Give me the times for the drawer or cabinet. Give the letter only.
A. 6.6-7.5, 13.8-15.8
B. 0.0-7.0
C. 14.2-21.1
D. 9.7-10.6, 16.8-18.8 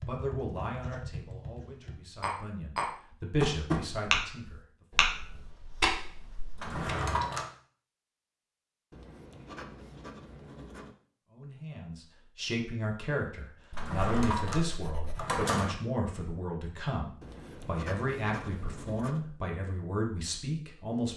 A.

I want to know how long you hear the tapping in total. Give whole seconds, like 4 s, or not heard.
7 s.